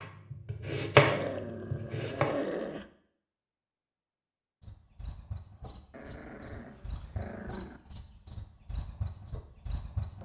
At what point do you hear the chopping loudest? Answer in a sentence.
The loudest moment of the chopping is at 1 second.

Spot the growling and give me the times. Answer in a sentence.
You can hear the growling from 0.9 to 2.9 s and from 5.9 to 7.8 s.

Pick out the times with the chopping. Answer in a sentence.
The chopping can be heard from 0.0 to 2.4 s.